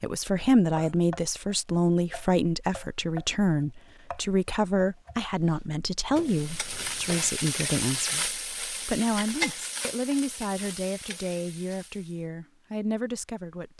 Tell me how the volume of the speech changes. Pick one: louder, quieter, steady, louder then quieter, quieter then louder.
quieter.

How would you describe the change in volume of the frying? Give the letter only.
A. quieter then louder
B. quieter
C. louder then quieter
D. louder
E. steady
B.